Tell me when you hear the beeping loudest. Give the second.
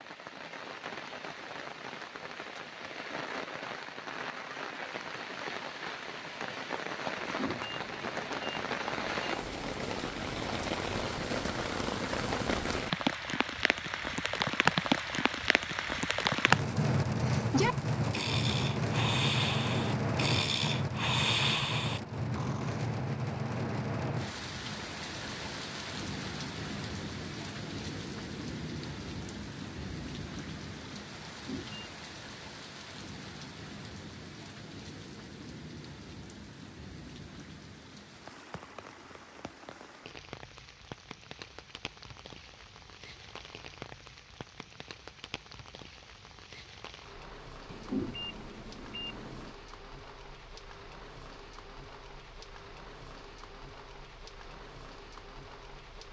48 s.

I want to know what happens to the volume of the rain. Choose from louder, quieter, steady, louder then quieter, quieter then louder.
louder then quieter.